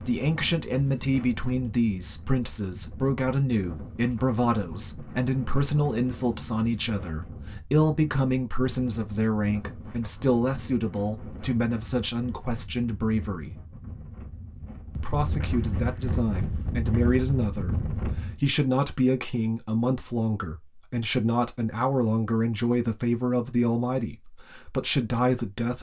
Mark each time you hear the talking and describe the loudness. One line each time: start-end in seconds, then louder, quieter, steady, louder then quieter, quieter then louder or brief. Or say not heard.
0.0-13.6 steady
14.9-25.7 steady.